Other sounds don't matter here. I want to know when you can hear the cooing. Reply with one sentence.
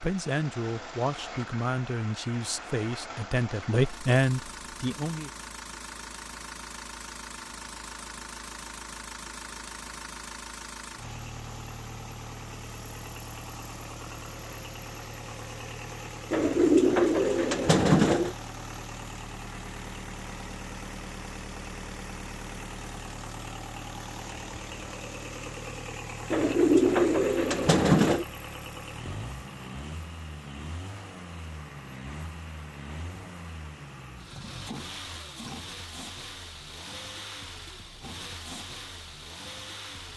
You can hear the cooing from 16.3 to 18.4 s and from 26.3 to 28.2 s.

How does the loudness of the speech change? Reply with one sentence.
The loudness of the speech goes up.